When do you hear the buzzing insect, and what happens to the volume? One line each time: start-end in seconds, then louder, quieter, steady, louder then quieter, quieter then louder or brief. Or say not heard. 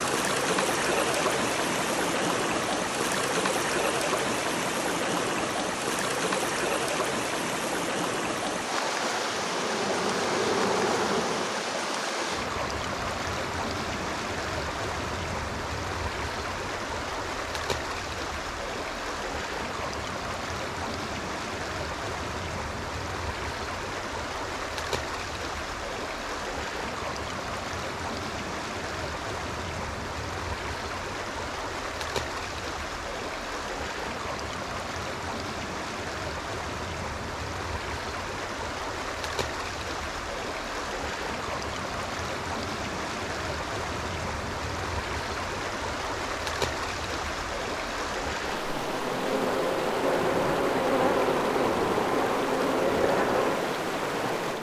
9.4-11.7 brief
48.8-54.5 steady.